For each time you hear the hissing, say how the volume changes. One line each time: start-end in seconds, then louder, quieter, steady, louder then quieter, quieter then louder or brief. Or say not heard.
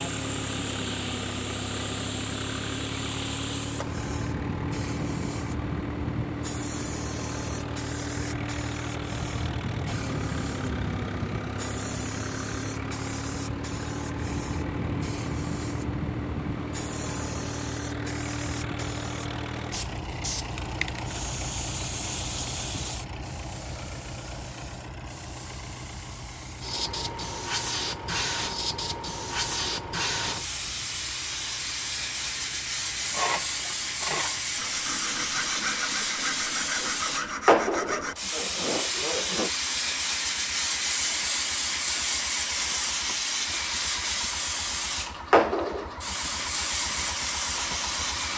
0.0-48.3 louder.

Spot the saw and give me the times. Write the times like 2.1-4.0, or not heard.
33.0-39.5.